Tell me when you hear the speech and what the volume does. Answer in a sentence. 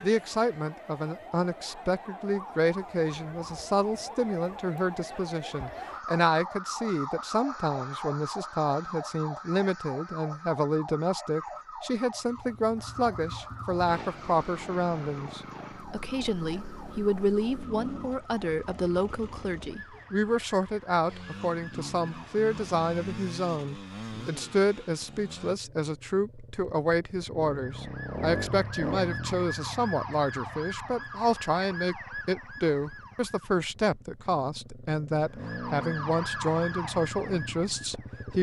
The speech can be heard from 0.0 to 38.3 s, at a steady volume.